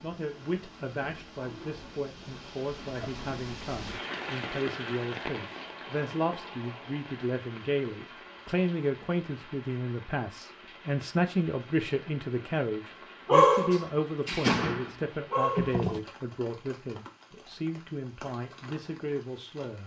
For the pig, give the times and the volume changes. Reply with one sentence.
You can't hear the pig here.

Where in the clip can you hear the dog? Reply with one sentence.
You can hear the dog from 13.2 to 16.0 s.